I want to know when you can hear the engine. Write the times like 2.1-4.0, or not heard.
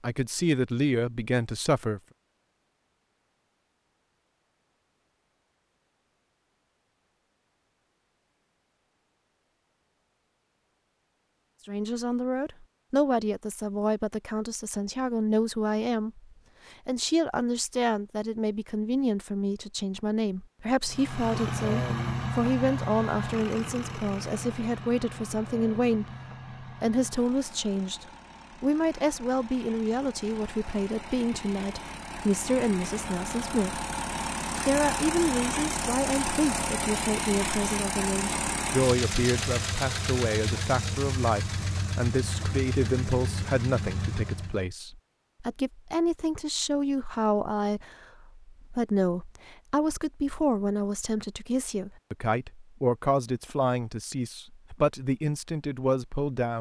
20.9-44.6.